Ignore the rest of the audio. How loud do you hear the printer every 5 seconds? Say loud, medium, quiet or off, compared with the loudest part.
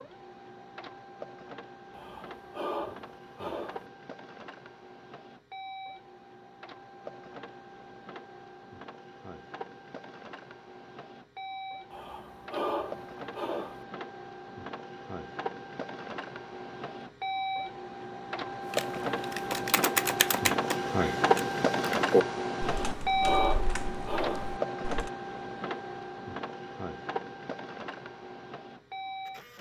quiet, quiet, quiet, medium, loud, medium.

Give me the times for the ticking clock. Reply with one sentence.
The ticking clock can't be heard in this clip.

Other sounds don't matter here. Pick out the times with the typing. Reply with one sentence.
You can hear the typing from 18.7 to 25.1 s.